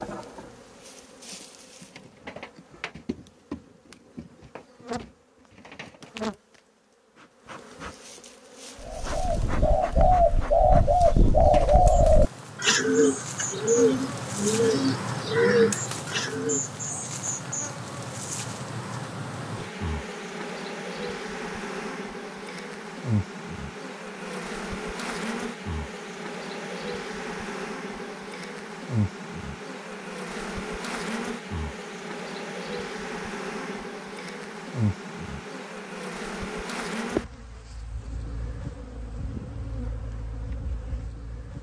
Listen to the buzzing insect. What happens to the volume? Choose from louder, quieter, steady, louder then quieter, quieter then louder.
louder.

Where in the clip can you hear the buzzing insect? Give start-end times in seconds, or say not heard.
0.0-41.5.